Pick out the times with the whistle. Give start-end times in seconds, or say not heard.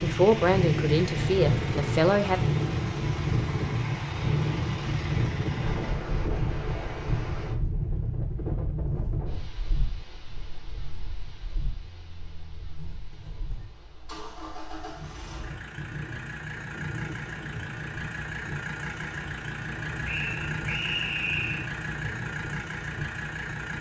20.1-21.7.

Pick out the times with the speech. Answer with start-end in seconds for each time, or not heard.
0.0-2.4.